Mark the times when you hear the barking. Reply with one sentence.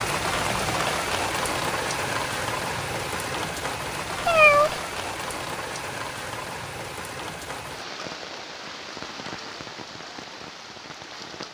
You can't hear the barking here.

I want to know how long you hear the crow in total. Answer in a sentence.
The crow can't be heard in this clip.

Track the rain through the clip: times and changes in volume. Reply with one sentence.
You can hear the rain from 0.0 to 11.4 s, getting quieter.